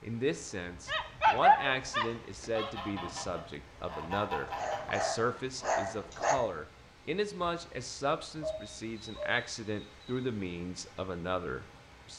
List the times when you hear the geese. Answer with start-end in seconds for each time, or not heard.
2.5-5.0.